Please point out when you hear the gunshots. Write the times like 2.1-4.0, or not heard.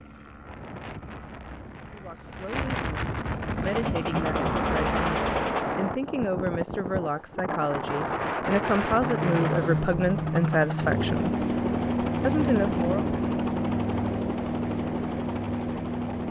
3.6-5.7.